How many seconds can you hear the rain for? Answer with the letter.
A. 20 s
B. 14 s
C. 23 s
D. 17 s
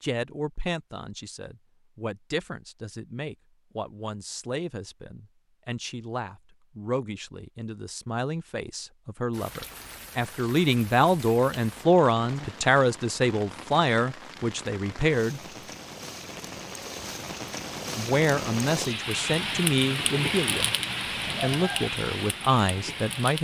B.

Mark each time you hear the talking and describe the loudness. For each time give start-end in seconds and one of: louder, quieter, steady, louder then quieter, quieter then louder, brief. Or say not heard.
0.0-15.4 louder
17.9-20.7 brief
21.4-23.4 brief.